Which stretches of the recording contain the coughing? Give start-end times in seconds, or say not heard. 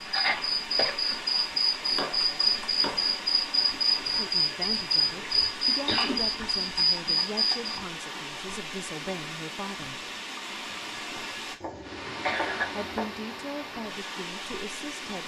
0.1-1.2, 5.8-6.2, 10.8-12.7.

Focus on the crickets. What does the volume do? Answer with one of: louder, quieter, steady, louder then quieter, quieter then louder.
steady.